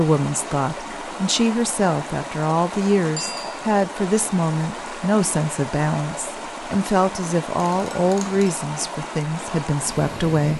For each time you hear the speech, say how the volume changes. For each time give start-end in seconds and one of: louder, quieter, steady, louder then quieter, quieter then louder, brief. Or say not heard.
0.0-10.5 steady.